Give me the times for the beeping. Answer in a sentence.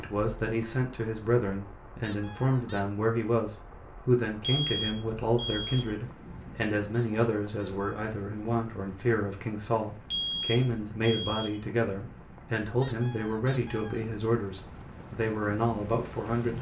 You can hear the beeping from 4.4 to 6.0 s and from 10.1 to 11.6 s.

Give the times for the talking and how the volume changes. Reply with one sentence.
The talking can be heard from 0.0 to 16.5 s, at a steady volume.